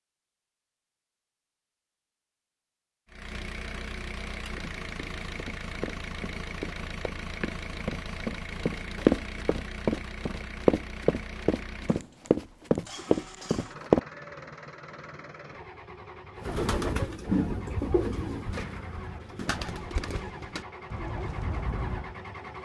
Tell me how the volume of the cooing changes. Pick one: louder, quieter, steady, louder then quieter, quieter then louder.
quieter.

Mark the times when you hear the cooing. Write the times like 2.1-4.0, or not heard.
16.4-22.1.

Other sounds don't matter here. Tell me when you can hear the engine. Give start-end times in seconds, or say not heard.
3.0-22.6.